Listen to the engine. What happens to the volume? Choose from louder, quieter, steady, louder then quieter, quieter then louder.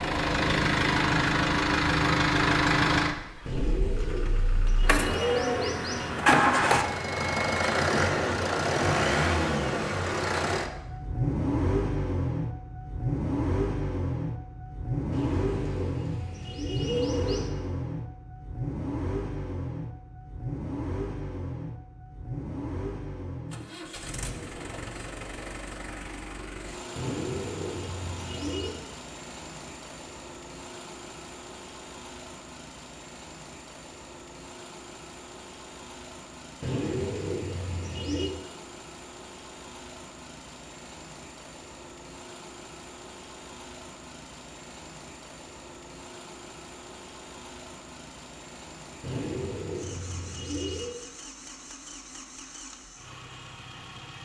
quieter.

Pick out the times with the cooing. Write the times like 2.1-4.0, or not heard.
3.5-6.1, 15.1-17.5, 26.9-28.7, 36.6-38.3, 49.0-51.0.